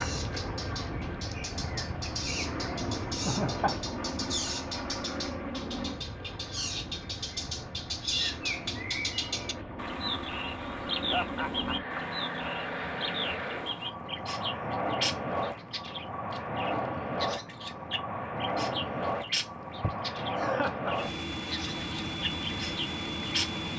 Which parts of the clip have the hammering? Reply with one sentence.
The hammering can't be heard in this clip.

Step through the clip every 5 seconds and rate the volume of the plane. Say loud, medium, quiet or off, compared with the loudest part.
loud, medium, loud, loud, loud.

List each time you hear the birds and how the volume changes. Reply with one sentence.
You can hear the birds from 0.0 to 23.5 s, at a steady volume.